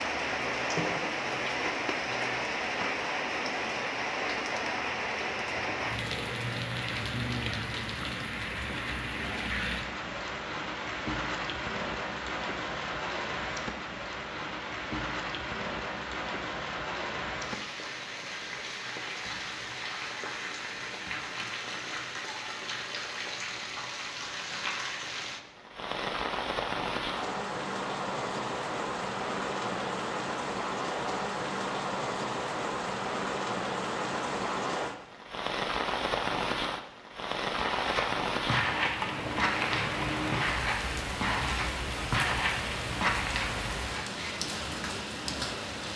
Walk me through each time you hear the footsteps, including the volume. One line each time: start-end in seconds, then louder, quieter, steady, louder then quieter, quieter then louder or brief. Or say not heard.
37.5-44.0 steady.